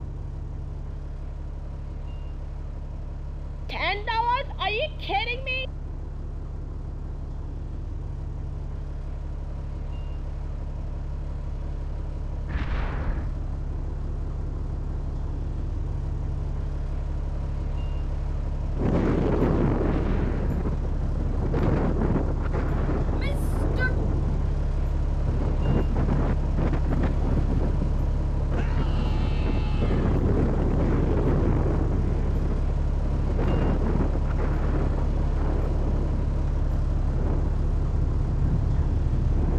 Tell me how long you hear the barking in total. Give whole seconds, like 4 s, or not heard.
not heard.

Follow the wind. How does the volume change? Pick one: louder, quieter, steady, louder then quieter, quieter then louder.
quieter.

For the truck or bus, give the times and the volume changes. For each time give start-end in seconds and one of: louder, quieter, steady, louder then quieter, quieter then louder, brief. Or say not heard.
0.0-39.5 louder.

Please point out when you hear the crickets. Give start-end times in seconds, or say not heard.
not heard.